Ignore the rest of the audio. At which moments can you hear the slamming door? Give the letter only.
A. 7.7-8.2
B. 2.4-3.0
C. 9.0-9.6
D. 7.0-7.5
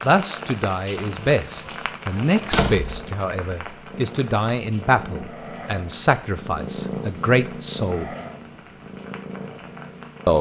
B.